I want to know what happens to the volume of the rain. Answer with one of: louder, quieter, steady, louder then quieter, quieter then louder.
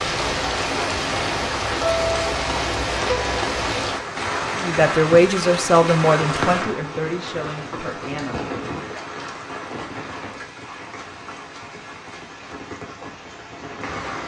quieter.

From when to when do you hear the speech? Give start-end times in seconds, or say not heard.
4.5-8.4.